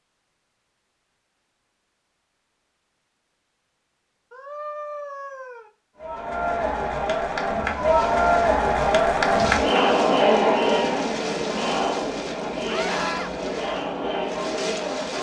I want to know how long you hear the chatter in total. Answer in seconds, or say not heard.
9 s.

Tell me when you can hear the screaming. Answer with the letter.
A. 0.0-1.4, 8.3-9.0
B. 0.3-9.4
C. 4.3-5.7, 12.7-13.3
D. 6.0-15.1
C.